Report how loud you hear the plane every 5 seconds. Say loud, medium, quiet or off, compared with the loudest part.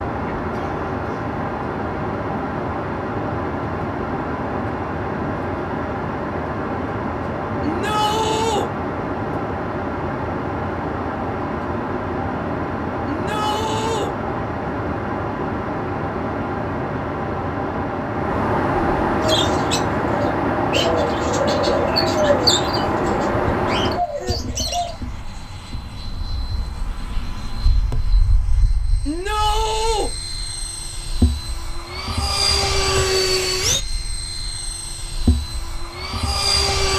loud, loud, loud, loud, loud, quiet, loud, loud.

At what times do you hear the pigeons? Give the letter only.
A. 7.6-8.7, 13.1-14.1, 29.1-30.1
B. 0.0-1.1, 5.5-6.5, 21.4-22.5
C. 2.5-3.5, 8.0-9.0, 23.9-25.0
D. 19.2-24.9
D.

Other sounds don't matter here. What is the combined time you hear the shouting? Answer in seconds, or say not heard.
3 s.